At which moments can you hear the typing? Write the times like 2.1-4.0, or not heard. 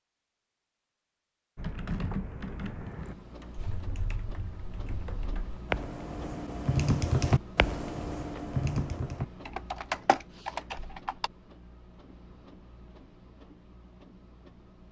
1.6-11.3.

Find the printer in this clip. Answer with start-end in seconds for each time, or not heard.
2.9-14.8.